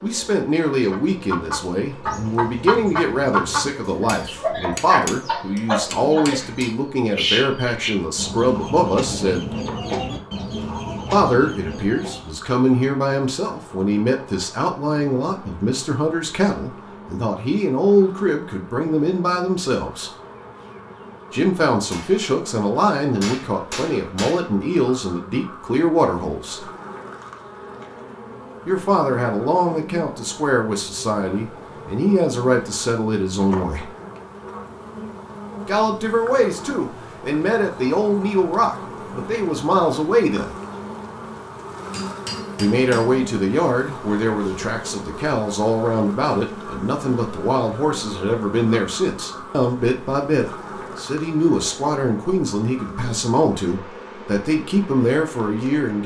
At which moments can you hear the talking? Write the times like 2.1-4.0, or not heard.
0.0-9.6, 11.1-20.1, 21.3-26.6, 28.6-33.9, 35.6-40.5, 42.5-56.0.